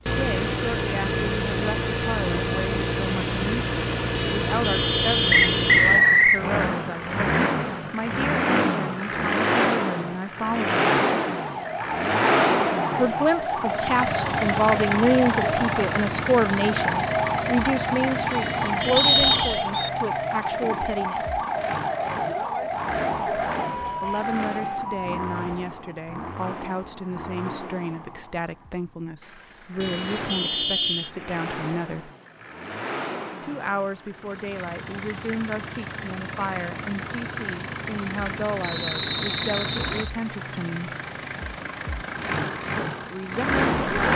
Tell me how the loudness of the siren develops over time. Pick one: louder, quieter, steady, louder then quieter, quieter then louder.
steady.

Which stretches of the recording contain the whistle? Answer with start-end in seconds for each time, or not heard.
5.3-6.5, 18.9-19.9, 38.6-40.1.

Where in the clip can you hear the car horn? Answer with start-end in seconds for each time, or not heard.
4.1-5.8, 18.3-19.7, 29.8-31.1.